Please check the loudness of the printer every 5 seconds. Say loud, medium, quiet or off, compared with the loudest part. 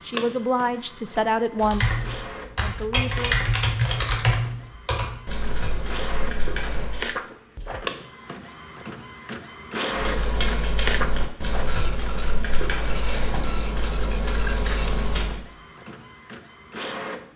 medium, loud, loud, medium.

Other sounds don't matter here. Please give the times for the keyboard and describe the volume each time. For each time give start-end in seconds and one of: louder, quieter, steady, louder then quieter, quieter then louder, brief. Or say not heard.
1.6-7.1 louder then quieter
9.9-15.4 steady.